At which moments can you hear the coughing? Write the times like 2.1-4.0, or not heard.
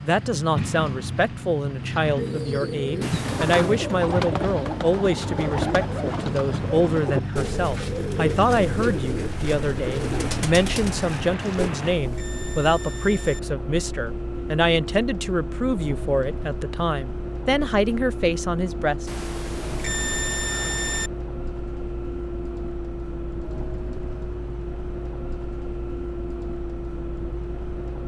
not heard.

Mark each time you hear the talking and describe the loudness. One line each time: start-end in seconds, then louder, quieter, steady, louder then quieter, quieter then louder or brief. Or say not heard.
0.0-19.1 steady.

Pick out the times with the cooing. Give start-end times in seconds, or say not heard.
2.1-11.7.